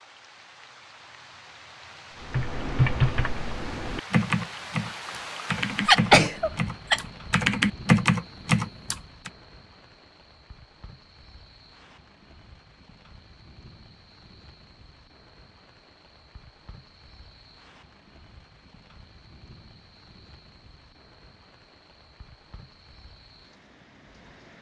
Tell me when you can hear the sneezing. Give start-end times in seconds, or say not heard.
5.8-7.0.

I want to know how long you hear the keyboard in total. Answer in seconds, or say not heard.
7 s.